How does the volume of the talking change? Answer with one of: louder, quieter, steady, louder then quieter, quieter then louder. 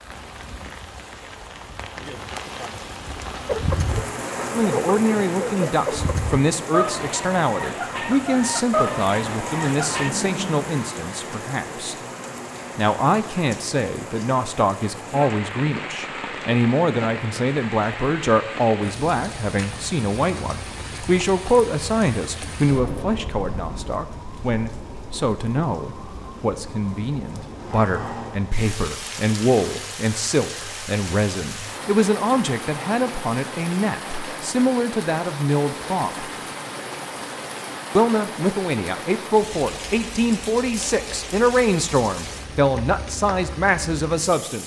steady.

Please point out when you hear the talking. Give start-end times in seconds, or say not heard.
4.5-11.9, 12.8-36.3, 38.0-44.6.